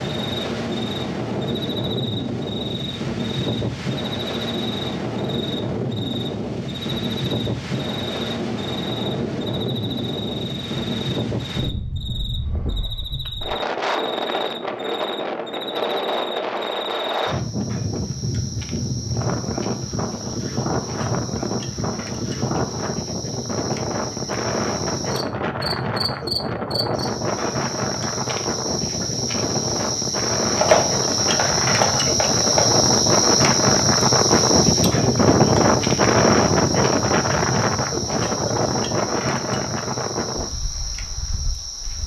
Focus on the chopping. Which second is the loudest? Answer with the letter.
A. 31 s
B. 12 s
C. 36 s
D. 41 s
A.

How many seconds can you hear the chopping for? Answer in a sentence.
You can hear the chopping for 2 seconds altogether.